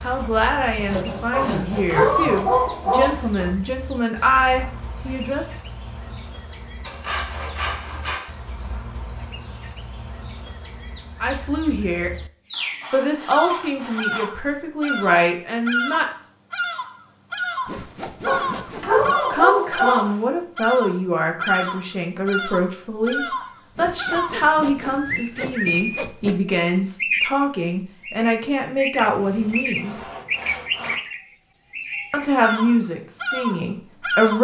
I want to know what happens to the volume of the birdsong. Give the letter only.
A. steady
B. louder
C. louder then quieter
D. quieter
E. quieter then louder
B.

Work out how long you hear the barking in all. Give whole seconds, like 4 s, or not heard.
4 s.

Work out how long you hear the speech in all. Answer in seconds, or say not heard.
23 s.